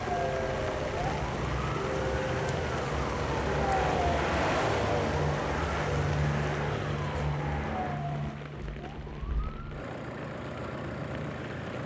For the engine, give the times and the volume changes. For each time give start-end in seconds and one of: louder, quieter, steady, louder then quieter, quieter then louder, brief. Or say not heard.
0.0-11.8 louder then quieter.